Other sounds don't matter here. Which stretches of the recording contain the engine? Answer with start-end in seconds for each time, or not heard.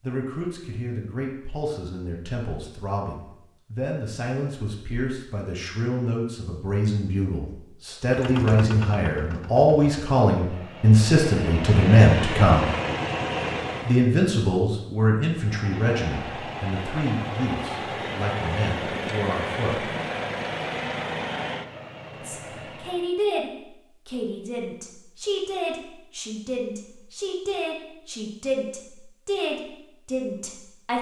8.1-14.1, 15.3-23.1.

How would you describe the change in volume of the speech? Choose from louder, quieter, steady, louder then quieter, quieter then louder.
louder then quieter.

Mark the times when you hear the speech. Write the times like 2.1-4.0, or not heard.
0.0-12.7, 13.8-19.9, 22.1-30.9.